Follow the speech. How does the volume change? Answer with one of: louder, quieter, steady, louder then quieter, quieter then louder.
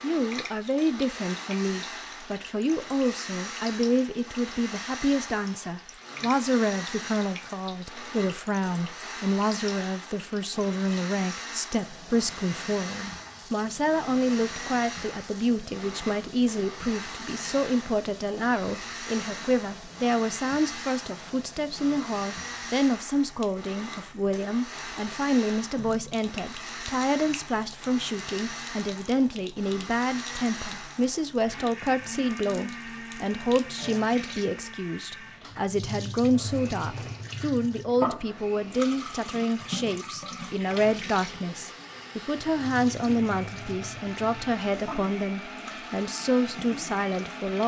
steady.